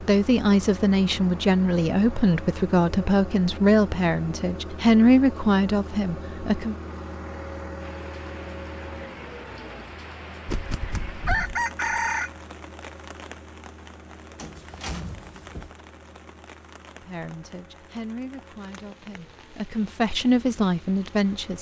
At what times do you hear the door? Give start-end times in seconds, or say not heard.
14.3-15.7.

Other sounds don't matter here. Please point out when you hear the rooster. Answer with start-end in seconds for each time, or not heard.
10.4-12.3.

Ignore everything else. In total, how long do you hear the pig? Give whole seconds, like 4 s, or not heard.
not heard.